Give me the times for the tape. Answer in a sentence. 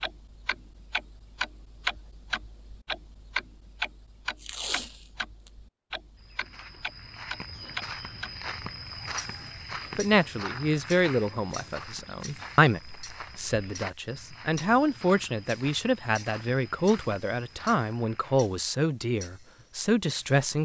The tape can be heard from 4.3 to 5.5 s.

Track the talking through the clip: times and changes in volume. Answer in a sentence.
The talking can be heard from 9.9 to 20.6 s, at a steady volume.